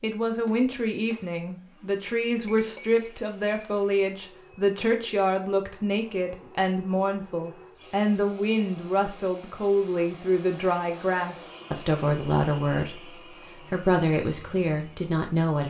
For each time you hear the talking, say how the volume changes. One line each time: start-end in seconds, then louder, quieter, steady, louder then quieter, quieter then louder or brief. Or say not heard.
0.0-15.6 steady.